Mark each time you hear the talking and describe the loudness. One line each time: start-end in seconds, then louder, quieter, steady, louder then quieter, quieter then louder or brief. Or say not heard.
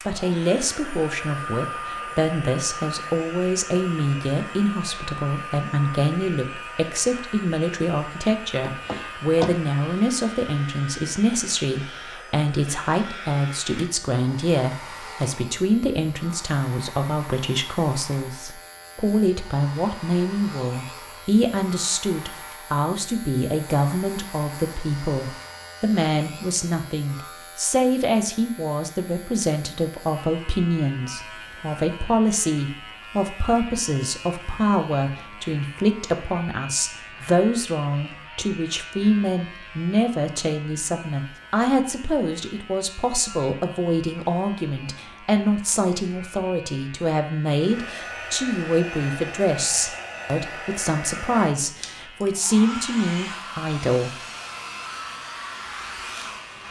0.1-54.1 steady.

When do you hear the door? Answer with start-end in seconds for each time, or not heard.
8.6-9.6.